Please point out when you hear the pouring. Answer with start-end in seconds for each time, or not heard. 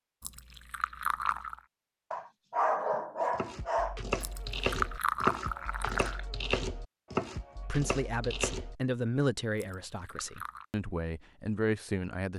0.2-1.6, 4.2-6.2, 9.6-10.7.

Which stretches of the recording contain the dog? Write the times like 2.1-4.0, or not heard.
2.1-4.0.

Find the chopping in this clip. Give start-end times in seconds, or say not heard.
3.3-8.8.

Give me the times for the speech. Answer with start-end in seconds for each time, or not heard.
7.7-12.3.